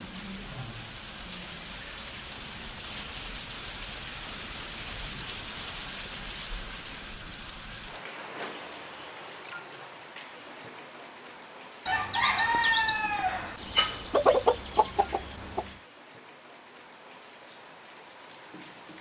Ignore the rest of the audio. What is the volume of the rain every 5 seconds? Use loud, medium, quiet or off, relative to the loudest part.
loud, loud, medium, medium.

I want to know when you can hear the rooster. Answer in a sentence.
You can hear the rooster from 11.8 to 15.8 s.